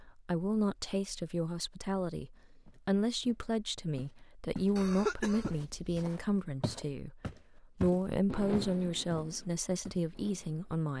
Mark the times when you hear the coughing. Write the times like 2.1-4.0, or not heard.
4.8-6.0.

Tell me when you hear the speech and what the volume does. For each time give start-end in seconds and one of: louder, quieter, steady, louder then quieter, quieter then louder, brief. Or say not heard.
0.0-10.9 steady.